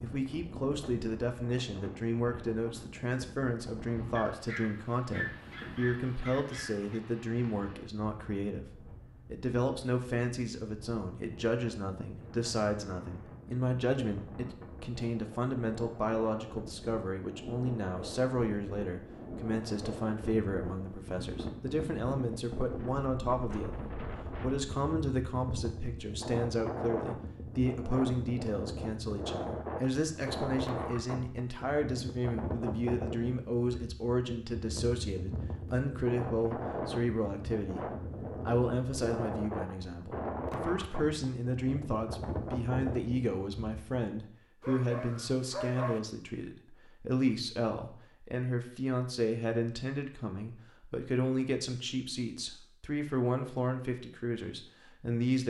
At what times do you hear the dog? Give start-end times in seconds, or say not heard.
4.2-7.0, 44.6-46.0.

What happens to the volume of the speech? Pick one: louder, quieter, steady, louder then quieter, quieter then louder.
steady.